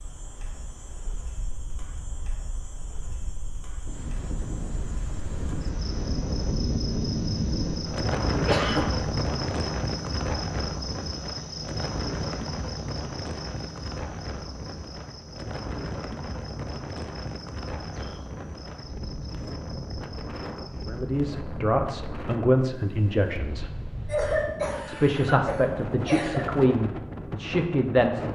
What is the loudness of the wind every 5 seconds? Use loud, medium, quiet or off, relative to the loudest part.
quiet, loud, medium, medium, medium, medium.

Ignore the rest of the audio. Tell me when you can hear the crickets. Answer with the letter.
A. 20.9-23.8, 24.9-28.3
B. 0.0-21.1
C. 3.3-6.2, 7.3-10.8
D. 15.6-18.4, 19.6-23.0
B.